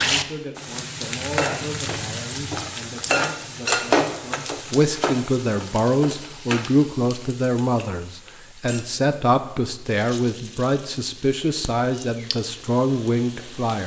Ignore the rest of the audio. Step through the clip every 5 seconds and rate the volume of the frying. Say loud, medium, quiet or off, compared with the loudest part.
loud, medium, quiet.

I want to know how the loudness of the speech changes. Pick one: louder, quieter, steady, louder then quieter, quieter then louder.
louder.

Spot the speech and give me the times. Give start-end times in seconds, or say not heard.
0.0-13.8.